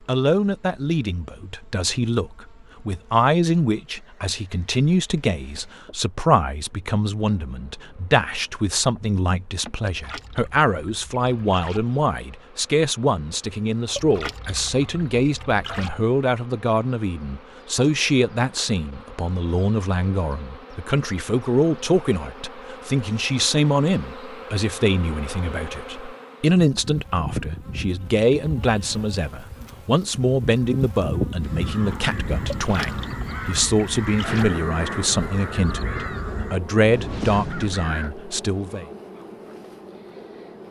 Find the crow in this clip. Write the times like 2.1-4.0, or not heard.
31.4-38.1.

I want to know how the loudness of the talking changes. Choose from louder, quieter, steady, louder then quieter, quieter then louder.
steady.